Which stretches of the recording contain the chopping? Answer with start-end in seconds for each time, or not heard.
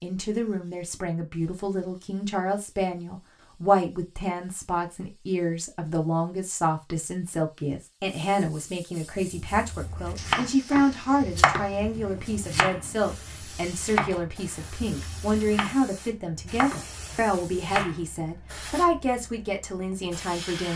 9.1-15.8, 16.4-18.0.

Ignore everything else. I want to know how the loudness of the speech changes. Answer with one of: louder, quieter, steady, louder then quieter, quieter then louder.
steady.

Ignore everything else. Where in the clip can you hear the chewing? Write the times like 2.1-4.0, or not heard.
not heard.